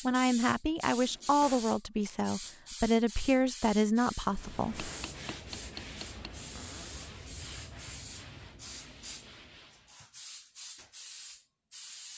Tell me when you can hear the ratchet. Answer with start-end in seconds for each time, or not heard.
not heard.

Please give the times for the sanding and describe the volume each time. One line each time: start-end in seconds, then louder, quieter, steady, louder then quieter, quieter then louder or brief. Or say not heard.
4.2-10.0 quieter.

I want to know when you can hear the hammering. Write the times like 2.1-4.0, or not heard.
4.8-6.3.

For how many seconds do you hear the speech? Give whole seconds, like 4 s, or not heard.
5 s.